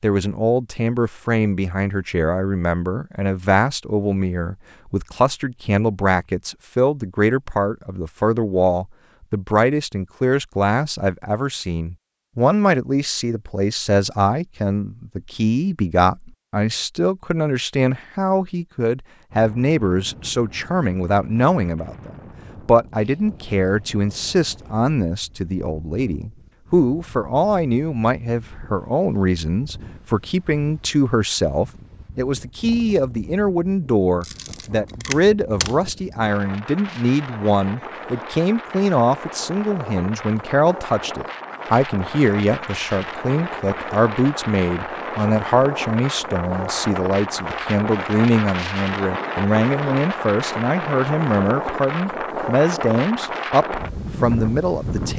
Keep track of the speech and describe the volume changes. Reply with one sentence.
The loudness of the speech stays about the same.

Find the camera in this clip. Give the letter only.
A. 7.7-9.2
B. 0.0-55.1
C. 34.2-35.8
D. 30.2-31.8
C.